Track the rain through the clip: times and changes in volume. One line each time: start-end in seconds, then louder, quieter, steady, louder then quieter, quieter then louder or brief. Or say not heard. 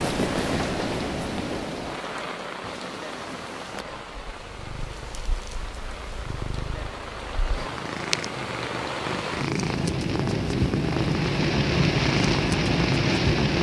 0.0-13.5 quieter then louder.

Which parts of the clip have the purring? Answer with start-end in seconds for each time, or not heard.
0.0-13.5.